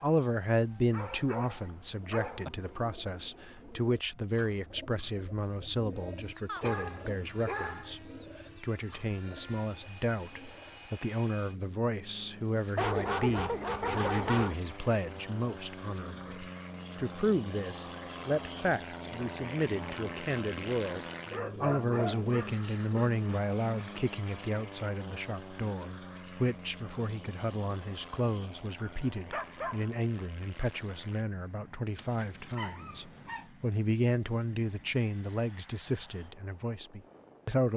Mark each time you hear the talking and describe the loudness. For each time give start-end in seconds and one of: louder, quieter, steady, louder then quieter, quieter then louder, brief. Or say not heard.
0.0-37.7 steady.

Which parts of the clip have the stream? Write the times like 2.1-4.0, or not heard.
not heard.